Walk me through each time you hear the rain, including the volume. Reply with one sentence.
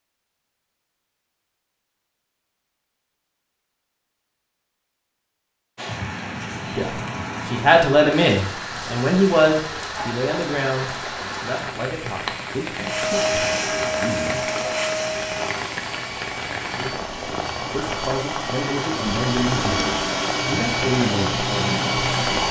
The rain can be heard from 5.8 to 22.4 s, at a steady volume.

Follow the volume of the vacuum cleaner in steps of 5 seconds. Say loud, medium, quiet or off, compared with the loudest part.
off, off, loud, medium, loud.